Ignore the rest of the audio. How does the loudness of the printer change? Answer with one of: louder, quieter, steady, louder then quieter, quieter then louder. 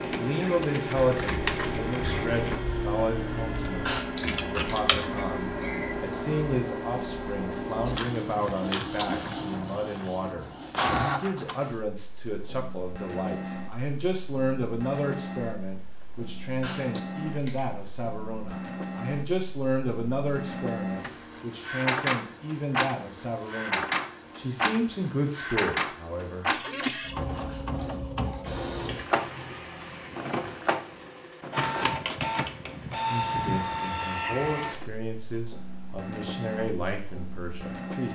steady.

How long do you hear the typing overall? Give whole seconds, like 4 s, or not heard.
5 s.